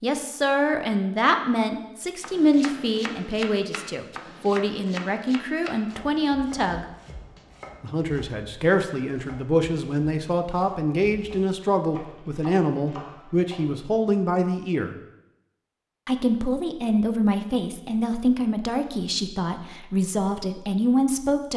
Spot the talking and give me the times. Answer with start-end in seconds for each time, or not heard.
0.0-6.8, 7.8-14.9, 16.1-21.5.